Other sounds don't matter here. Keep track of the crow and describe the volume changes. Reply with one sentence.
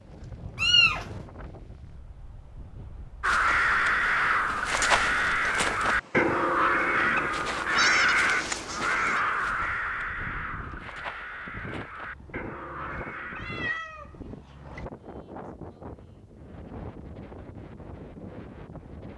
The volume of the crow goes down.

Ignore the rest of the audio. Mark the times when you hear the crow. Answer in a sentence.
The crow can be heard from 3.2 to 13.8 s.